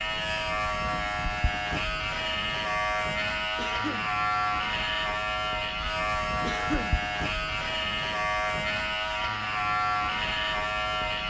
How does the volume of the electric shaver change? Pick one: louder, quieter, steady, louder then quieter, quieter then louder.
steady.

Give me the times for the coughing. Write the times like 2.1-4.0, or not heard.
3.5-4.2, 6.4-7.0.